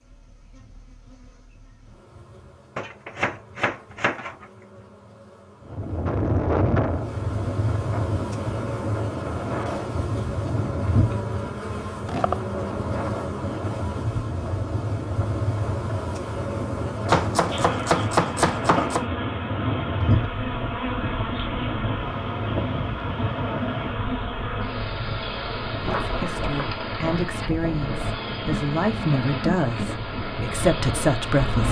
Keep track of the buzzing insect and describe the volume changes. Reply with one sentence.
The volume of the buzzing insect goes up.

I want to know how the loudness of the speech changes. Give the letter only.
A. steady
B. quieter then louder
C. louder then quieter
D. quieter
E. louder
E.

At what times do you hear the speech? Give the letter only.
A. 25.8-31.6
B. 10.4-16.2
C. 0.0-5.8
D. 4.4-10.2
A.